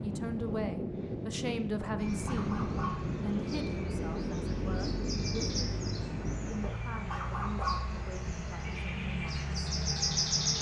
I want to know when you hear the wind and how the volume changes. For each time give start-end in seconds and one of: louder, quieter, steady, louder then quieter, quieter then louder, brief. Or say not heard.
0.0-6.7 steady.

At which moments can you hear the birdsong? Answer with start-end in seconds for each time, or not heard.
1.9-10.5.